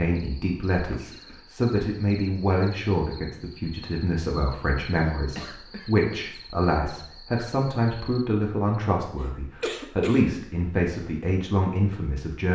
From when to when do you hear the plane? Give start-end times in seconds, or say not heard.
not heard.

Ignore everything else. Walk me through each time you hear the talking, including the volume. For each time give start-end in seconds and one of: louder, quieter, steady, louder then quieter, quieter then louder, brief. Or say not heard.
0.0-12.4 steady.